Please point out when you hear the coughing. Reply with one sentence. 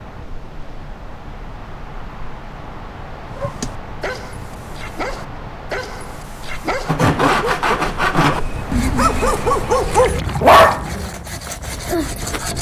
The coughing can't be heard in this clip.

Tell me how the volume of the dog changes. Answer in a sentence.
The loudness of the dog goes up.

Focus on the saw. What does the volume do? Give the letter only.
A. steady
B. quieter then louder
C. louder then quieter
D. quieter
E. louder
D.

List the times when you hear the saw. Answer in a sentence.
You can hear the saw from 6.8 to 12.5 s.